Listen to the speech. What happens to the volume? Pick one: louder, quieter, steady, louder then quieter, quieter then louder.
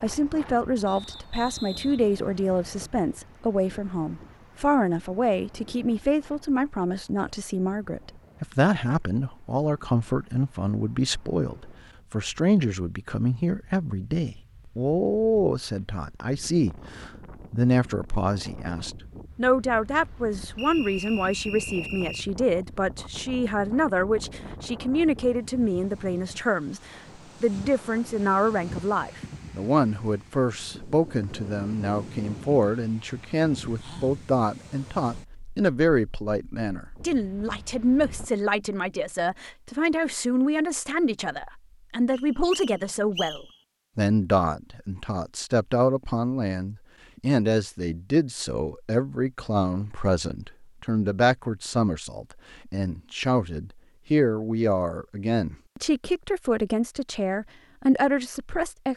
steady.